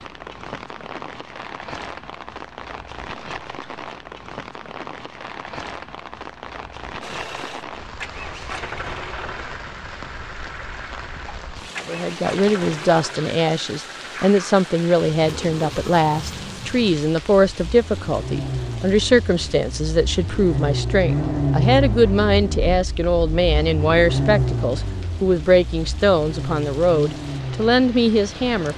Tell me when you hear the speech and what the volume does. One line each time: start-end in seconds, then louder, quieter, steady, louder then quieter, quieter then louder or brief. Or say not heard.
11.8-28.7 steady.